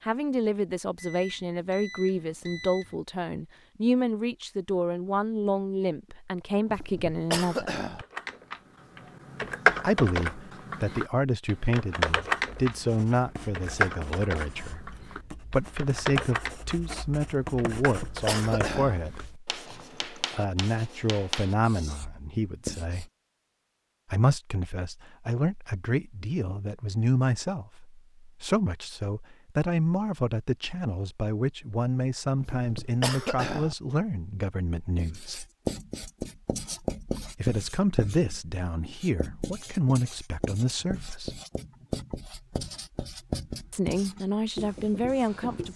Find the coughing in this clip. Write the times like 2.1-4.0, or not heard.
6.7-8.1, 17.8-19.0, 32.4-33.8.